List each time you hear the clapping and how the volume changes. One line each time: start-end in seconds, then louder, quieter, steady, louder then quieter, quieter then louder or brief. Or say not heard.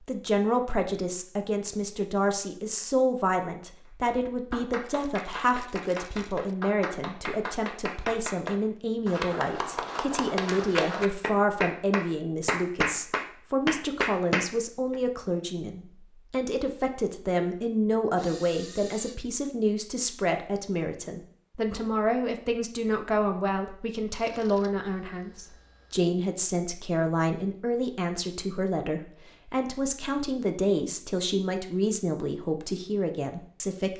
4.0-14.9 louder.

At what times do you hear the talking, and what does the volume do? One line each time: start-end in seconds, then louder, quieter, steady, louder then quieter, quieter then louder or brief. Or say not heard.
0.0-33.9 steady.